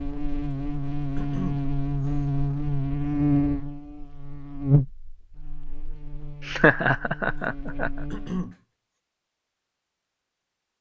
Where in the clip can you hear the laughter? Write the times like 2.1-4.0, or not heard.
6.4-7.9.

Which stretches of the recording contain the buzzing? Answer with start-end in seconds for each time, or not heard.
0.0-8.5.